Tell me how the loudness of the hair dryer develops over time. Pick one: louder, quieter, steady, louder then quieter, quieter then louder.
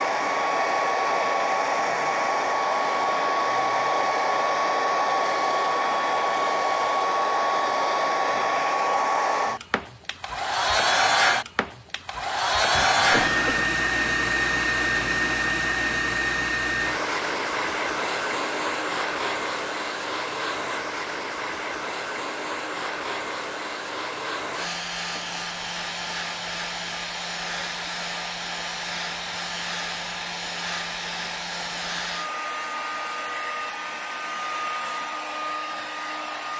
quieter.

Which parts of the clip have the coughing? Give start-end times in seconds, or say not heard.
12.7-13.7.